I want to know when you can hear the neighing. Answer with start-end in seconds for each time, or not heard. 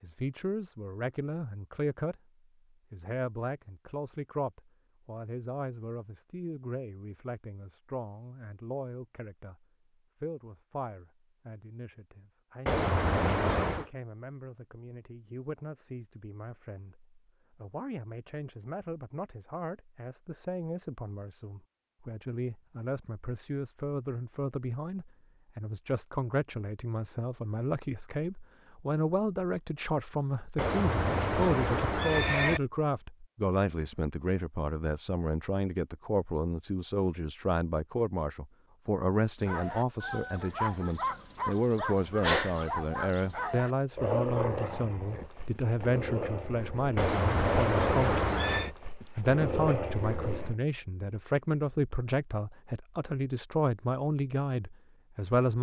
12.7-13.9, 30.6-32.6, 47.0-48.7.